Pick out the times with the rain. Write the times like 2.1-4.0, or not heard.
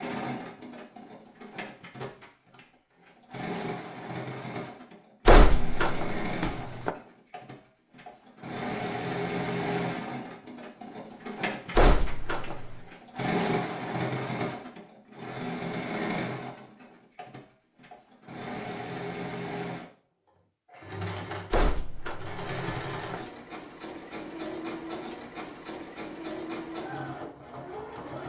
not heard.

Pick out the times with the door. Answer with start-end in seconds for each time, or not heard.
5.2-6.9, 11.8-12.8, 21.5-23.2.